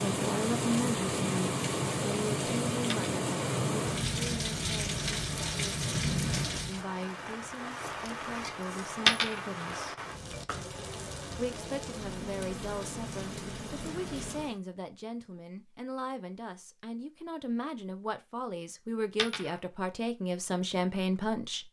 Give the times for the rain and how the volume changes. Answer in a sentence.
The rain can be heard from 0.0 to 14.6 s, getting quieter.